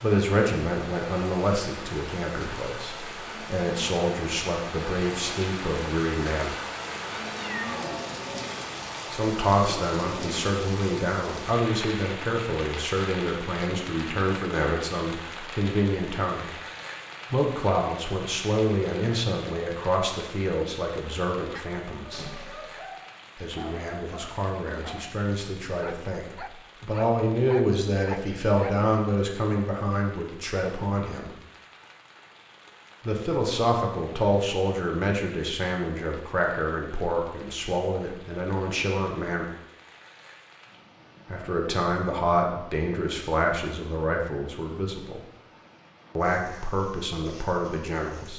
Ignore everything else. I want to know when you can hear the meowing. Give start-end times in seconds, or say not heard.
6.9-8.2.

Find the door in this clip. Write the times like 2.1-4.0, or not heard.
22.1-22.8.